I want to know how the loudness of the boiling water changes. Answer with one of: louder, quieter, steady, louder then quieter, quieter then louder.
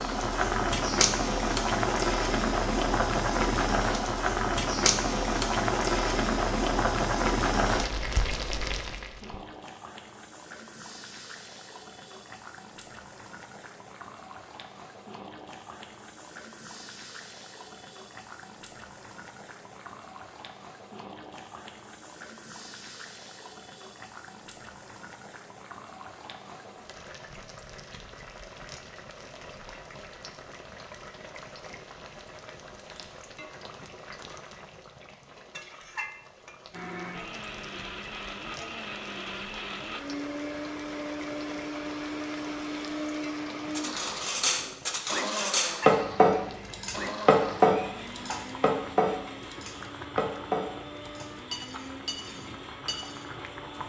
quieter.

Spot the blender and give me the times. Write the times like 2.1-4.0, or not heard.
36.7-53.8.